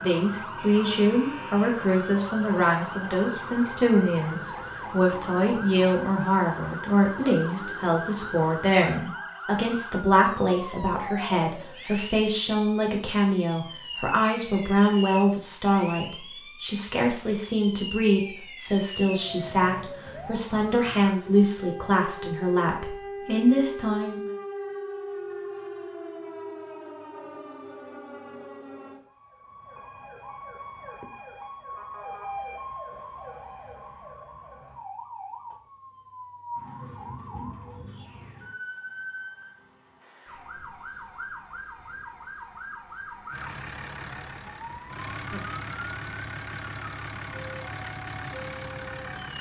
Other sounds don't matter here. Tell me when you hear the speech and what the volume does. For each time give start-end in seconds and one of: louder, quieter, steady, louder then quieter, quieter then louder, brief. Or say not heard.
0.0-24.2 steady.